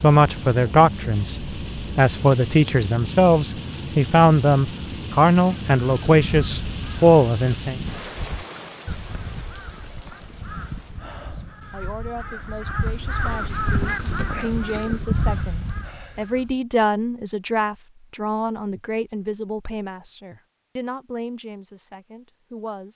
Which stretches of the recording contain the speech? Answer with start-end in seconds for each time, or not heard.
0.0-7.8, 11.3-22.9.